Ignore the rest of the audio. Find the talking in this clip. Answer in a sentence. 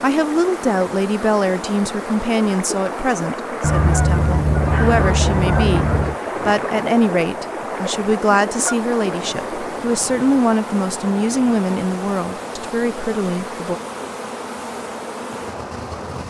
The talking can be heard from 0.0 to 13.8 s.